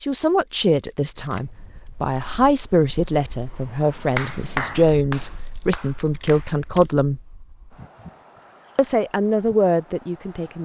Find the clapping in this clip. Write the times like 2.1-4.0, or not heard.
4.2-7.0.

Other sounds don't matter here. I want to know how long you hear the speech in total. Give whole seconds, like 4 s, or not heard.
9 s.